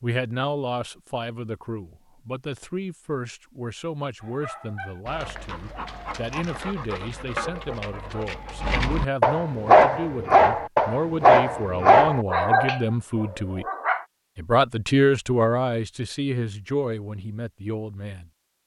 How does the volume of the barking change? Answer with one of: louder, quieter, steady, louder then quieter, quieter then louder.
louder.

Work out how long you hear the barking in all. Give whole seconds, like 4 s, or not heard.
10 s.